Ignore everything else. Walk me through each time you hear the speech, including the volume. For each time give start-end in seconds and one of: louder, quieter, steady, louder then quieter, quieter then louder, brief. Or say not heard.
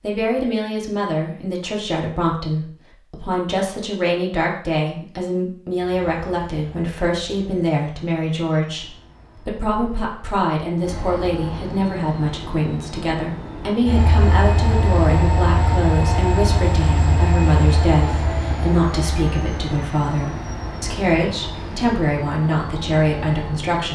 0.0-23.9 steady.